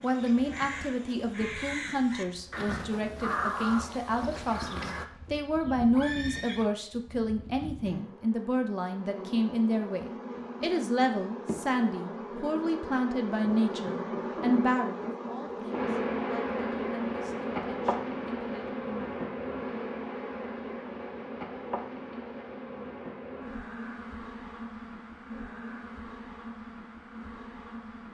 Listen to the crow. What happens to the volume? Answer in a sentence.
The volume of the crow goes up, then down.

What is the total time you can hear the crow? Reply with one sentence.
The crow can be heard for 5 seconds in total.